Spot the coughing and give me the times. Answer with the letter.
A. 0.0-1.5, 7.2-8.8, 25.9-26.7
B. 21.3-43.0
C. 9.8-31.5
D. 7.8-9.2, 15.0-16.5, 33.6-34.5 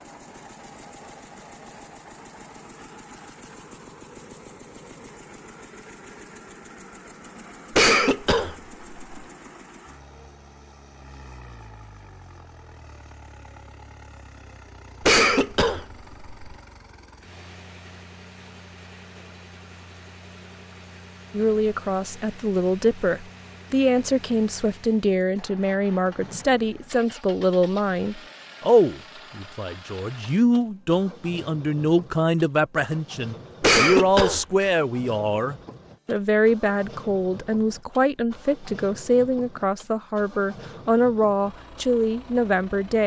D.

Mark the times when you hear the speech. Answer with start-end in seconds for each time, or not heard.
21.3-43.0.